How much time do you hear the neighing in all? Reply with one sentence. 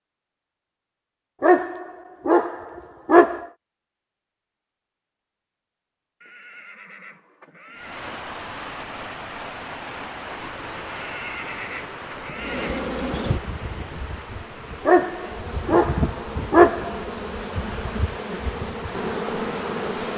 You can hear the neighing for 4 seconds altogether.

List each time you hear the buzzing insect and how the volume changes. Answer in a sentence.
The buzzing insect can be heard from 12.3 to 20.1 s, getting quieter then louder.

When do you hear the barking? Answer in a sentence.
You can hear the barking from 1.4 to 3.5 s and from 14.8 to 17.1 s.